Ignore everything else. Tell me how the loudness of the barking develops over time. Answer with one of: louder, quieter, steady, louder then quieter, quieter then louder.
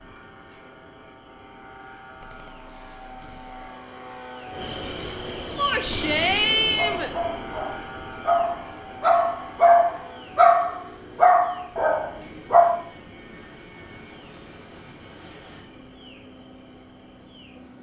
louder then quieter.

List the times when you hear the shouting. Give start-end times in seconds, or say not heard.
5.5-7.1.